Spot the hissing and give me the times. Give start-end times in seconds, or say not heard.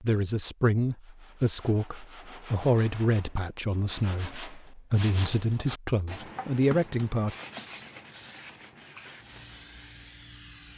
7.5-10.7.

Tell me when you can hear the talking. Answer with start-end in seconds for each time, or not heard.
0.0-7.3.